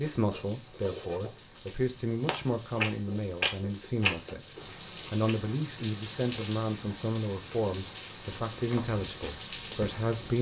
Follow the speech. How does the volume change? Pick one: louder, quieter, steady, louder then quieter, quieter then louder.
steady.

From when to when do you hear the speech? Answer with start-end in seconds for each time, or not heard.
0.0-10.3.